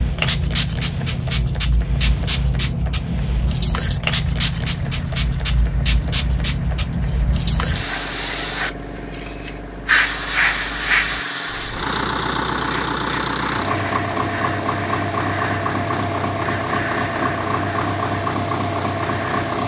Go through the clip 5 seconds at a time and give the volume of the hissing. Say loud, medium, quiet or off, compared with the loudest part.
loud, loud, loud, medium.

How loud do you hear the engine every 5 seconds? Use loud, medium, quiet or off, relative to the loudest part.
quiet, quiet, loud, loud.